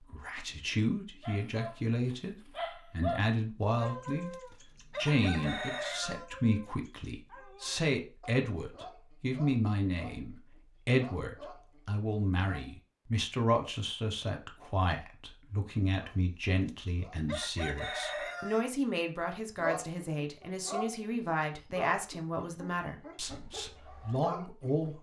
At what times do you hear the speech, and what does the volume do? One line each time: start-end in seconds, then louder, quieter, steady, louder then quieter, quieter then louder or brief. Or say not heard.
0.0-24.9 steady.